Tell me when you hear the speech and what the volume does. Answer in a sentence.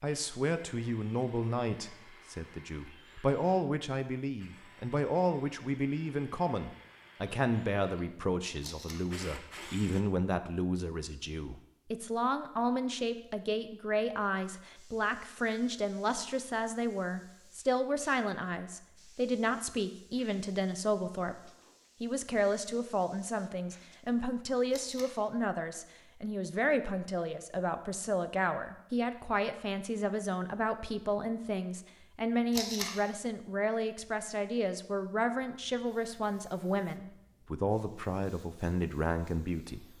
You can hear the speech from 0.0 to 39.9 s, at a steady volume.